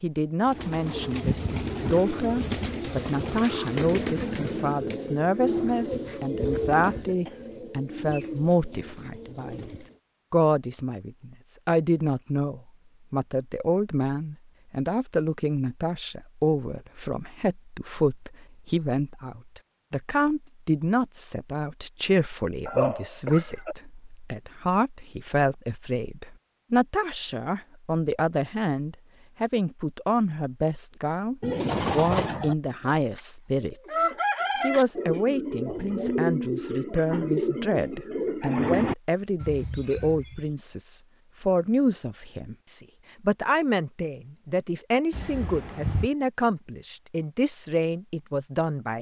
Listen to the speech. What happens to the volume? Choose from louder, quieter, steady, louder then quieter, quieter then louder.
steady.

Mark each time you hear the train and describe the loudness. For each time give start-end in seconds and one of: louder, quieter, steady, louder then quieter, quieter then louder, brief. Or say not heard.
not heard.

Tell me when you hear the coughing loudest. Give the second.
23 s.